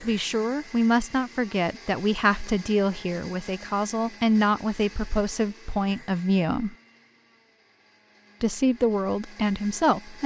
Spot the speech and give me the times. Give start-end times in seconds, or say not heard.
0.0-6.8, 8.4-10.2.